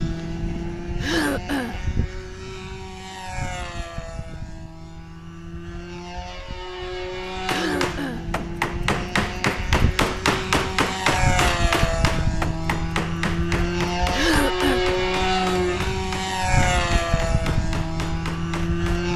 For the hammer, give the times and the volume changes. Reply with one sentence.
The hammer can be heard from 7.3 to 19.1 s, getting quieter.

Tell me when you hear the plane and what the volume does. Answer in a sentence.
You can hear the plane from 0.0 to 19.1 s, getting louder.